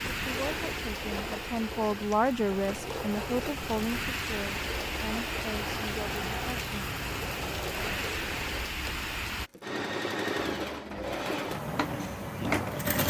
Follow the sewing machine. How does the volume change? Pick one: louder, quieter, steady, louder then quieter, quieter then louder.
louder.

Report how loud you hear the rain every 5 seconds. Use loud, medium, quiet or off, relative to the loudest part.
loud, loud, off.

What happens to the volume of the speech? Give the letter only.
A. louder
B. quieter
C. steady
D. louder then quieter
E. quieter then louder
D.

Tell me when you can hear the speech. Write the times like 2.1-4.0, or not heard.
0.2-6.9.